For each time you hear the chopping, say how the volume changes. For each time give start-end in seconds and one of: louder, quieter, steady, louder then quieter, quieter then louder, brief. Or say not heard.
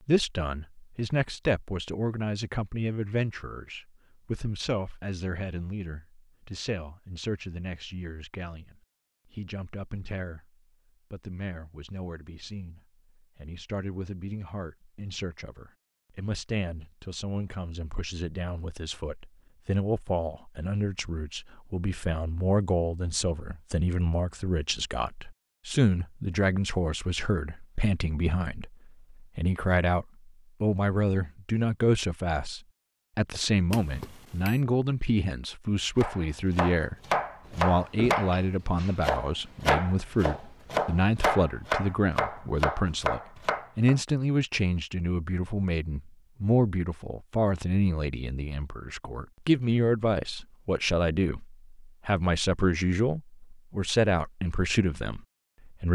36.0-44.0 steady.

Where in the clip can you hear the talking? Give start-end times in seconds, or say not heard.
0.1-55.8.